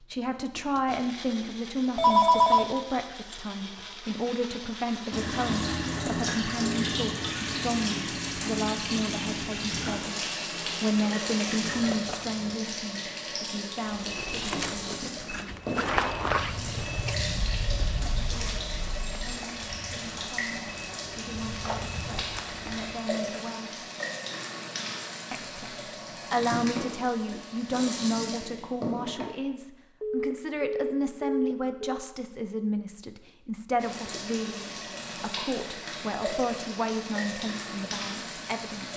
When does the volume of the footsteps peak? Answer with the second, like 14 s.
16 s.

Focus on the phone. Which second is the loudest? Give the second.
2 s.